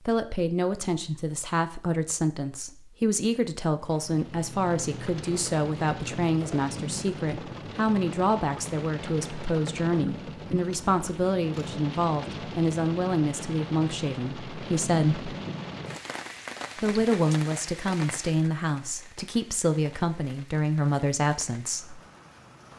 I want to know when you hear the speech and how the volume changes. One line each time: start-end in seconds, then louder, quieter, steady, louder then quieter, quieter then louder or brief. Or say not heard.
0.1-15.3 steady
16.8-22.0 steady.